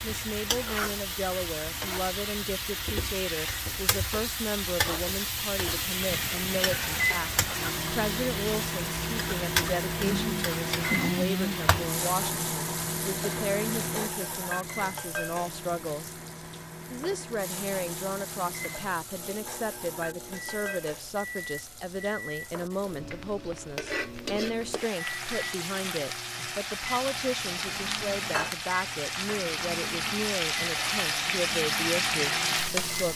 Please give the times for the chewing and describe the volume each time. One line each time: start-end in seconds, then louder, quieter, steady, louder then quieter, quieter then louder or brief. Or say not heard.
not heard.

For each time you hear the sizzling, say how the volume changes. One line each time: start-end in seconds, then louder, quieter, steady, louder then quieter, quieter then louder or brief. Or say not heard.
0.0-33.1 quieter then louder.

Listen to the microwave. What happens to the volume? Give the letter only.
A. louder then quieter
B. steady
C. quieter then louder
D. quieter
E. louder
D.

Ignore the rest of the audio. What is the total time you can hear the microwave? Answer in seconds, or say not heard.
27 s.